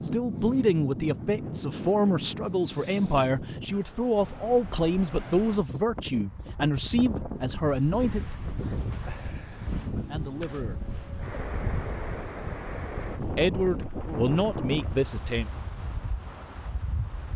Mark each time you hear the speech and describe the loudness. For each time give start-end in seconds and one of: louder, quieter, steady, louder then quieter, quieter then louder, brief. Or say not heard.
0.0-8.2 steady
10.1-10.8 brief
13.3-15.5 brief.